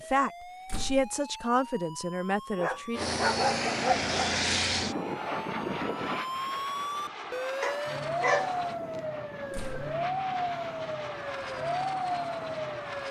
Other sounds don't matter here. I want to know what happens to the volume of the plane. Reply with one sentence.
The loudness of the plane goes down.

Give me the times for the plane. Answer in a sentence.
The plane can be heard from 2.9 to 13.0 s.